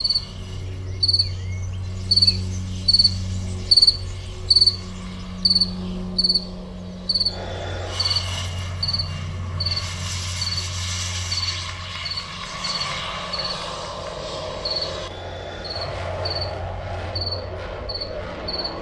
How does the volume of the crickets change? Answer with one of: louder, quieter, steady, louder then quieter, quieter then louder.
quieter.